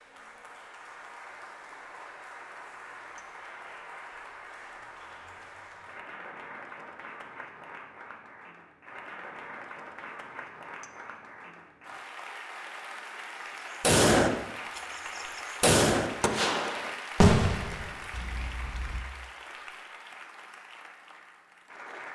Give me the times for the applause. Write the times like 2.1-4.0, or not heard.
0.0-22.1.